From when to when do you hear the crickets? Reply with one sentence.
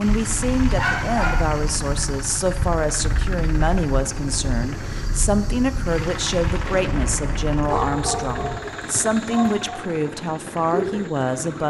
The crickets can be heard from 0.0 to 11.6 s.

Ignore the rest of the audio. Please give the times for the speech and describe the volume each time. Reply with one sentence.
You can hear the speech from 0.0 to 11.6 s, at a steady volume.